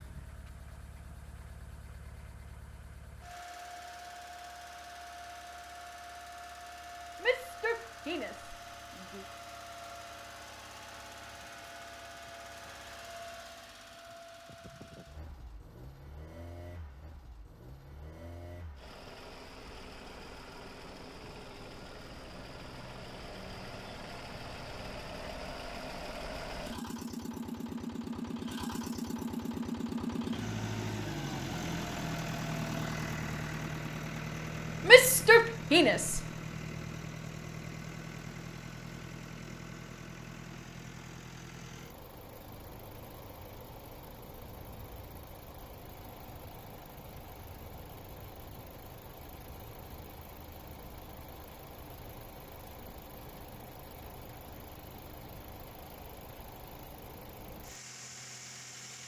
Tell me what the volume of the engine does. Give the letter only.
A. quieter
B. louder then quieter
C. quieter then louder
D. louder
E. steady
B.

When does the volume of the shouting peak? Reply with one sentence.
The loudest moment of the shouting is at 35 seconds.